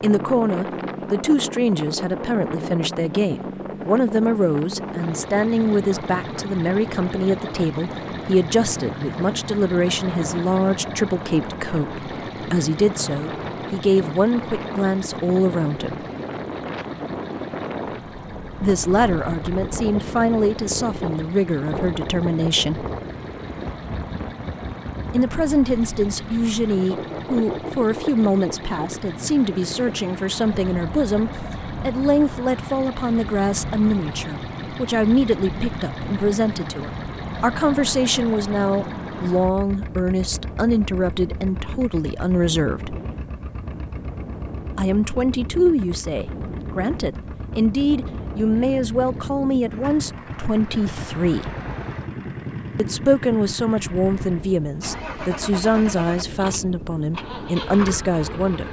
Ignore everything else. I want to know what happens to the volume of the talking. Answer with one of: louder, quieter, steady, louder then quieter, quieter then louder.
steady.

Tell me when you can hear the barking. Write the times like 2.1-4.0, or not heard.
not heard.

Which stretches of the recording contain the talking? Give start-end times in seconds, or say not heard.
0.0-16.0, 18.6-22.9, 25.1-43.0, 44.8-51.5, 52.8-58.6.